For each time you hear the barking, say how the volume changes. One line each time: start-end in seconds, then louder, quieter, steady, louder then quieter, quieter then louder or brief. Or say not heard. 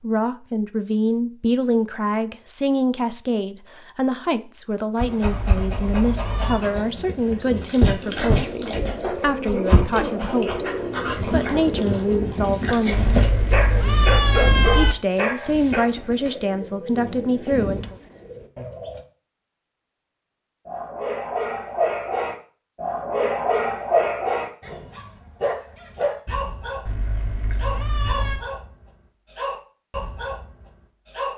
5.0-15.9 louder
20.6-31.3 quieter.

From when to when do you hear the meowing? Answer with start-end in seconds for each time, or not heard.
5.3-6.6, 12.9-14.9, 26.9-28.4.